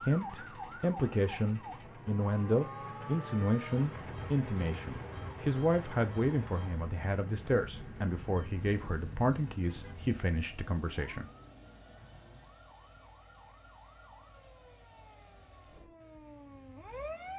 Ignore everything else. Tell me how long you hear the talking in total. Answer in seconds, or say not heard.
11 s.